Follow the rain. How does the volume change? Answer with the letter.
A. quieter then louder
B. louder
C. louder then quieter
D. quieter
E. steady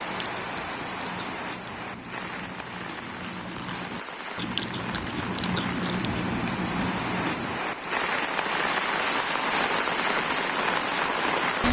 B.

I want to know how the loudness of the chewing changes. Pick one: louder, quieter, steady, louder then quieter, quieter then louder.
louder.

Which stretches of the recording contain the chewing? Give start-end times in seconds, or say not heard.
0.1-7.6.